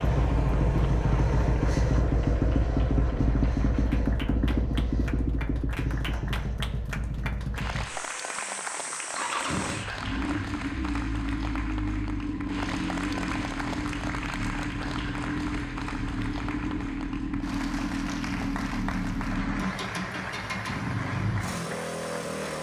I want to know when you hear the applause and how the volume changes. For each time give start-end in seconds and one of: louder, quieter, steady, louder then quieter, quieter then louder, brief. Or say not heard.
0.0-22.5 louder.